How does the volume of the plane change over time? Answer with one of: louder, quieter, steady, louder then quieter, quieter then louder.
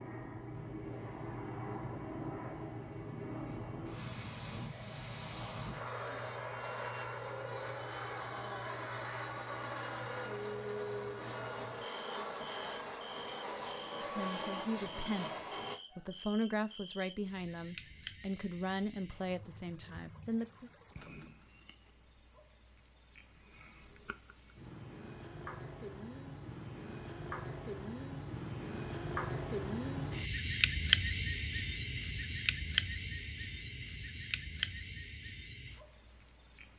steady.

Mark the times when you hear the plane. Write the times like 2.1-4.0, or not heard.
0.0-15.8.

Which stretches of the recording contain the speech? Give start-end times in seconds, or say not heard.
13.9-20.7.